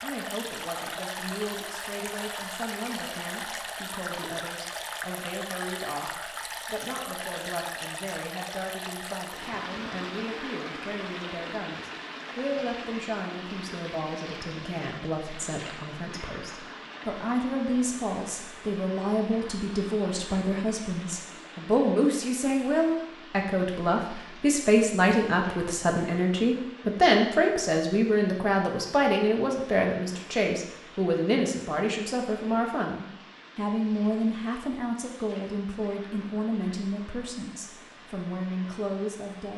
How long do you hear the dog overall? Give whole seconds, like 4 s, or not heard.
not heard.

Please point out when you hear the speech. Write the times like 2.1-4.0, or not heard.
0.0-39.5.